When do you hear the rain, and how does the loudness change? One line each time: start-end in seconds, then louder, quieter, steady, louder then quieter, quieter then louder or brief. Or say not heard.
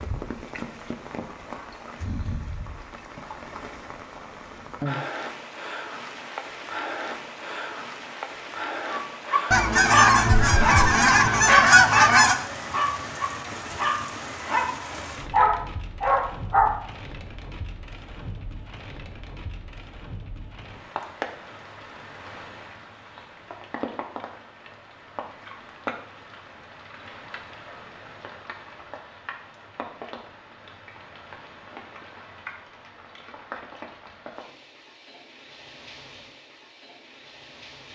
0.0-37.9 quieter.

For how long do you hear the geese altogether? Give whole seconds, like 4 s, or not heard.
3 s.